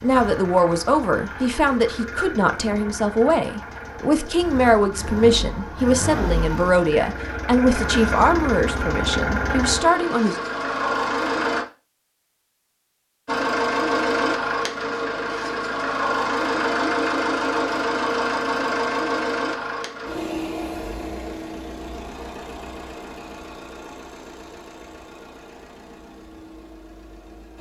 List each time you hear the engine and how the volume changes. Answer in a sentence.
The engine can be heard from 0.0 to 11.7 s, getting louder; and from 13.2 to 27.5 s, getting quieter.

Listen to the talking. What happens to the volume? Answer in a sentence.
The volume of the talking stays about the same.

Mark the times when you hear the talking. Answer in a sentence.
The talking can be heard from 0.0 to 10.3 s.